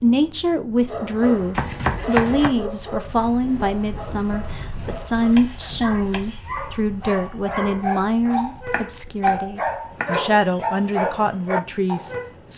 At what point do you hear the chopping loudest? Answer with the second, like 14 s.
2 s.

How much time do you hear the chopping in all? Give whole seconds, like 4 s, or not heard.
5 s.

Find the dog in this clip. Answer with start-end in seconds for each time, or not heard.
0.8-12.3.